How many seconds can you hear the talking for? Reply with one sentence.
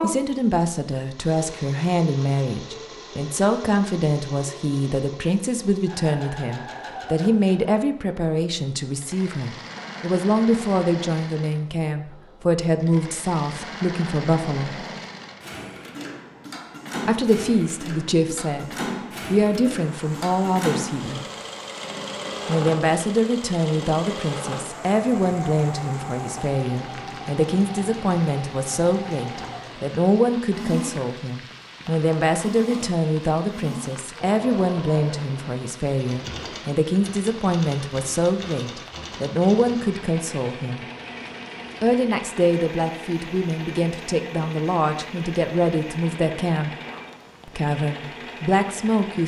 You can hear the talking for 44 seconds altogether.